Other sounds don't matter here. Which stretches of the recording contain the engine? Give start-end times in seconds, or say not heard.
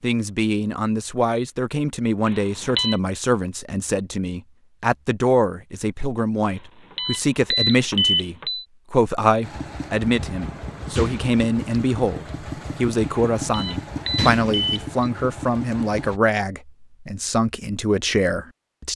9.4-16.2.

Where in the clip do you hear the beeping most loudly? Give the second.
8 s.